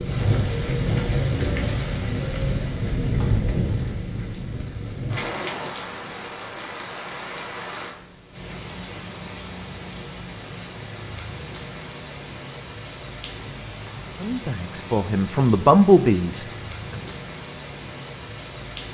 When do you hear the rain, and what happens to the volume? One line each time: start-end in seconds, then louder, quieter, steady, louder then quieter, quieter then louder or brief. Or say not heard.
0.0-18.8 quieter.